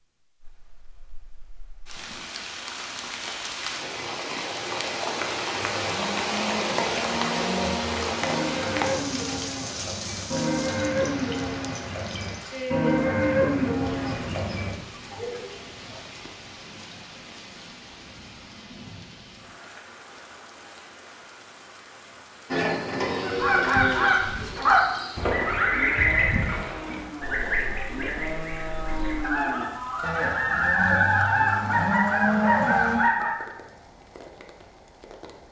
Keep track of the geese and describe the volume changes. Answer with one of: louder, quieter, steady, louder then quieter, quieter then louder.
quieter then louder.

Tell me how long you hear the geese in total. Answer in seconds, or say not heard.
10 s.